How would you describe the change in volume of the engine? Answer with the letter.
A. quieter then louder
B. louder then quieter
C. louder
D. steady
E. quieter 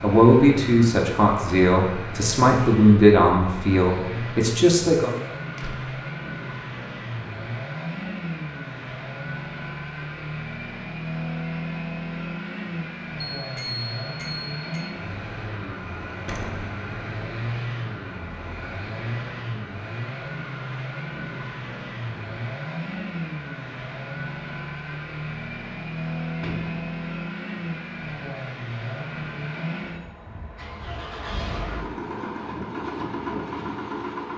D.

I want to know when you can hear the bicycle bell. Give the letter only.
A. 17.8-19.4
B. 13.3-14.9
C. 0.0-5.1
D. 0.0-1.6
B.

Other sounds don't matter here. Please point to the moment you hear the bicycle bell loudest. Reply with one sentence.
The loudest moment of the bicycle bell is at 14 seconds.